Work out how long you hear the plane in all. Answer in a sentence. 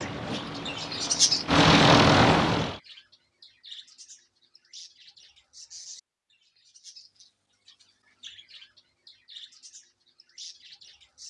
The plane can be heard for 3 seconds in total.